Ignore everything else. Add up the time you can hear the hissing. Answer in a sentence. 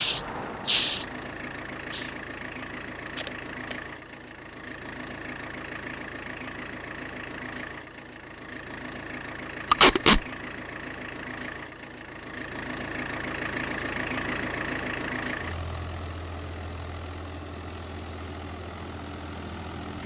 You can hear the hissing for 2 seconds altogether.